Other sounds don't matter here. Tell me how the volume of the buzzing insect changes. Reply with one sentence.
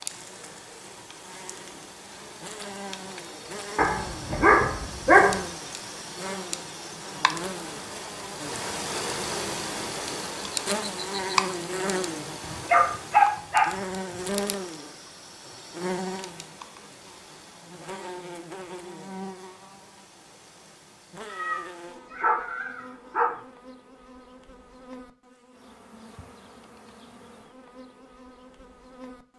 The volume of the buzzing insect goes up, then down.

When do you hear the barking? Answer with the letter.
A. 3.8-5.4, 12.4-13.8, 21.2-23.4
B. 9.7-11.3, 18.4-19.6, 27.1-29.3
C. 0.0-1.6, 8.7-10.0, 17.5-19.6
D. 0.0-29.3
A.